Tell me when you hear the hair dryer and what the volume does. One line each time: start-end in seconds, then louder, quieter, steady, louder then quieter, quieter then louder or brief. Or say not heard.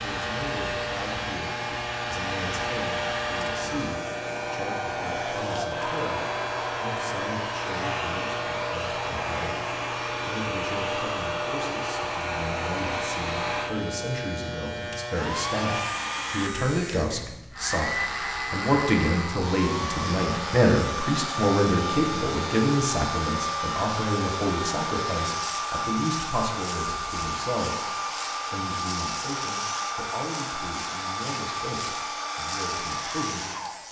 0.0-33.8 steady.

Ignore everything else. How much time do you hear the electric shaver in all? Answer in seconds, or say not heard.
34 s.